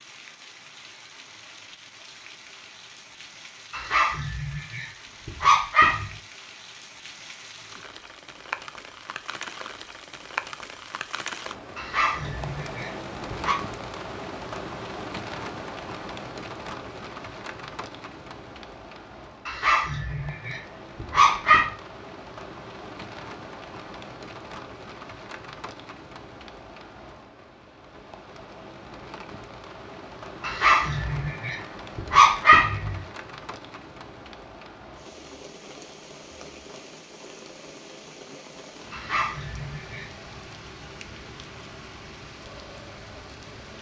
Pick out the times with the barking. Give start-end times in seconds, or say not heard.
3.7-6.1, 11.8-13.6, 19.4-21.7, 30.4-33.0, 38.9-40.1.